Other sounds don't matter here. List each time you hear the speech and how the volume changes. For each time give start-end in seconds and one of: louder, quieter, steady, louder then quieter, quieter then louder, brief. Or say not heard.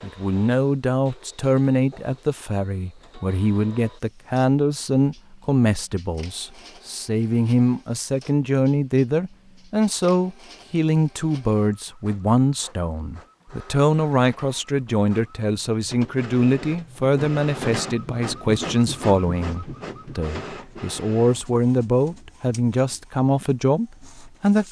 0.0-24.6 steady.